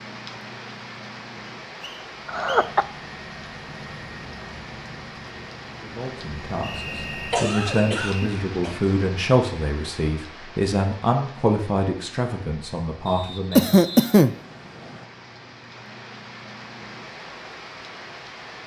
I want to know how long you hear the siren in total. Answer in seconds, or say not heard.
not heard.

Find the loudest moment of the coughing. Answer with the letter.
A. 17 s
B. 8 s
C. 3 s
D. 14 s
D.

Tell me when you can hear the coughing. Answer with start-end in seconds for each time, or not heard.
2.2-2.9, 7.3-8.8, 13.6-14.3.